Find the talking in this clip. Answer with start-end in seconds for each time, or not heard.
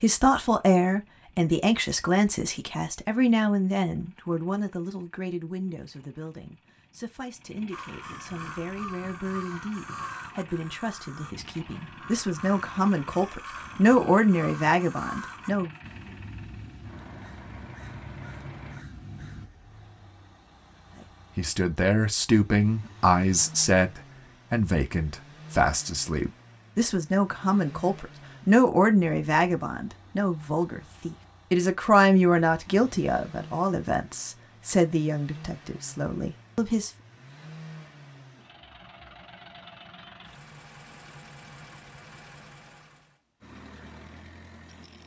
0.0-15.7, 21.4-36.9.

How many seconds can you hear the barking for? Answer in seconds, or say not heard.
not heard.